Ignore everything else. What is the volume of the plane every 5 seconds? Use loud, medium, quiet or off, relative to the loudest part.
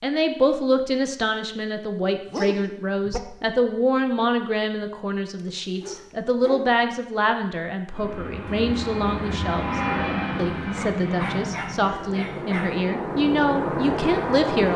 off, loud, loud.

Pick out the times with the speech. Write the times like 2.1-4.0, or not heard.
0.0-14.7.